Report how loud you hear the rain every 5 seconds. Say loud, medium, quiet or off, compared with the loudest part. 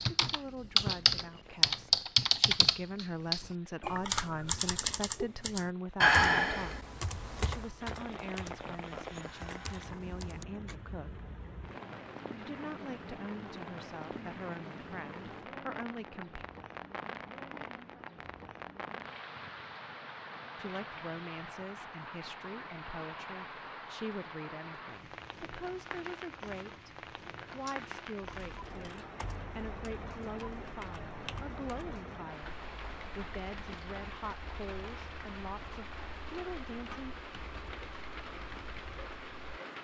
quiet, loud, loud, loud, loud, loud, loud, loud.